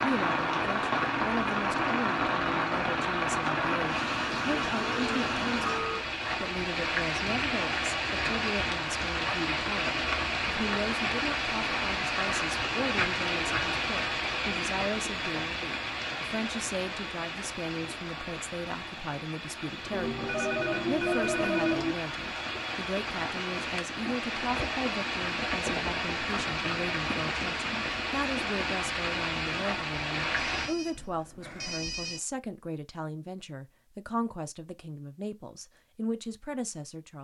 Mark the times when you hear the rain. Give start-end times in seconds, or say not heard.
0.0-30.7.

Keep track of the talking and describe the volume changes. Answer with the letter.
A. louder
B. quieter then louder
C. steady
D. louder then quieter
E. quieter
C.